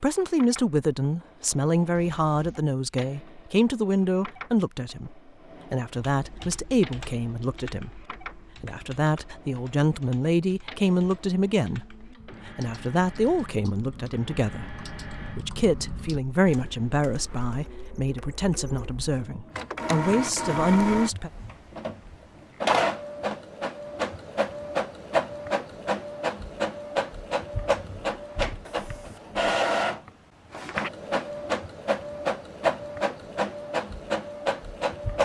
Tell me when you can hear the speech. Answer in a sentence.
You can hear the speech from 0.0 to 21.3 s.